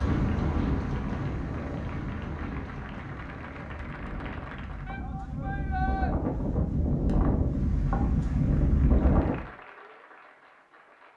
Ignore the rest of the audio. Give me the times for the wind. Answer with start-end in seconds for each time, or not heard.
0.0-9.4.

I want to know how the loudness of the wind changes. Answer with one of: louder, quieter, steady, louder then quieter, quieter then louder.
quieter then louder.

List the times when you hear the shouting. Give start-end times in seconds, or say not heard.
4.8-6.2.